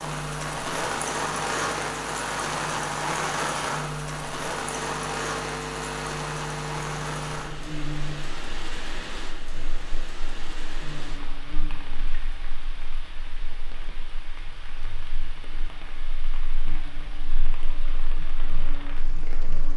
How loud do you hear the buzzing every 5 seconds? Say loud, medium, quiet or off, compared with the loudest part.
loud, loud, quiet, quiet.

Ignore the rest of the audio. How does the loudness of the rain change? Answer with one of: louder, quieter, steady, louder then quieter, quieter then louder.
quieter.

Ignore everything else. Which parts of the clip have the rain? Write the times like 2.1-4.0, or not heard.
0.0-19.7.